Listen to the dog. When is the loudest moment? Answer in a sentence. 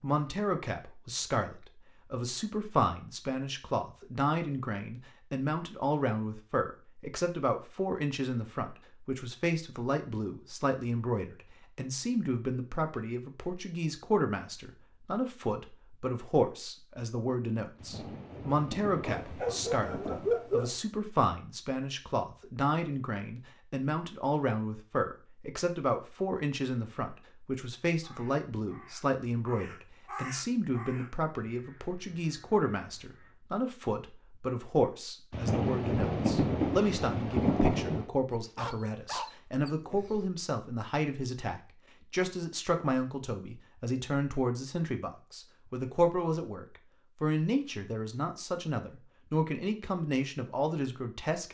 The volume of the dog peaks at 20 seconds.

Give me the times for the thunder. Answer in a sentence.
The thunder can be heard from 17.8 to 20.4 s and from 35.3 to 38.1 s.